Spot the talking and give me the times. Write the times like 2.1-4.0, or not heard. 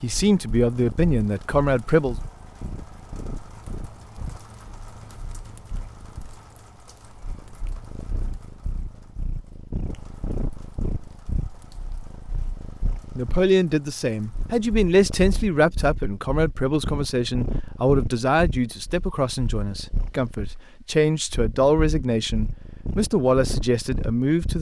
0.0-2.1, 13.2-24.5.